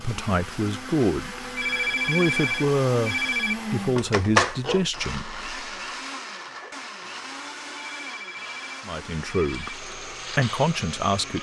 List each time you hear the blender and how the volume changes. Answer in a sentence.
The blender can be heard from 0.0 to 11.3 s, getting louder then quieter.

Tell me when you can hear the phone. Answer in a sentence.
You can hear the phone from 1.6 to 3.5 s and from 7.8 to 9.8 s.